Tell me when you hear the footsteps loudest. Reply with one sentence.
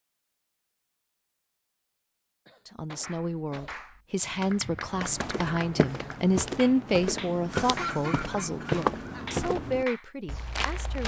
The loudest moment of the footsteps is at 9 seconds.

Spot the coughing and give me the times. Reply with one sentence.
You can hear the coughing from 2.5 to 3.8 s and from 7.5 to 9.3 s.